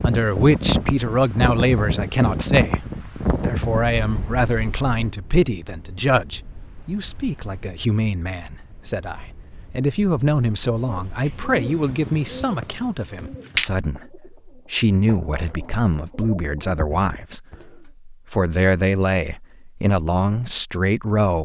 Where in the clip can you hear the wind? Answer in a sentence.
The wind can be heard from 0.0 to 12.9 s.